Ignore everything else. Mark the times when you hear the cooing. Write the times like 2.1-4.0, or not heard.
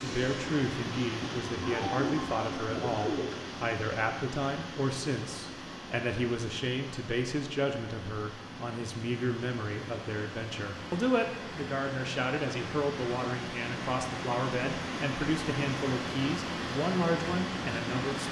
1.6-3.4.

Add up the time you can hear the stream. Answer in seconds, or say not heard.
18 s.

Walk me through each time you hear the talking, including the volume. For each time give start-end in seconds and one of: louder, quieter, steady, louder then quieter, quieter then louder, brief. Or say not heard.
0.0-18.2 steady.